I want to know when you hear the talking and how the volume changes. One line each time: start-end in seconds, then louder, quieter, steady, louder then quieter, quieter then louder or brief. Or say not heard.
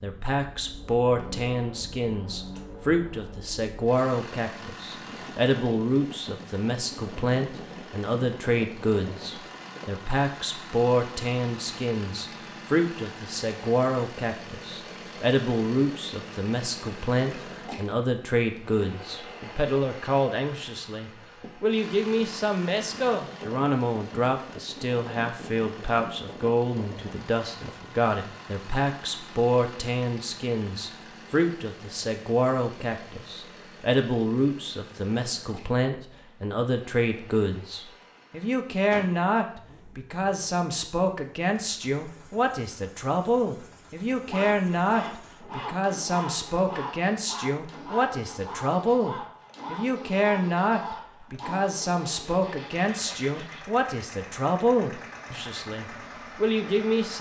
0.0-57.1 steady.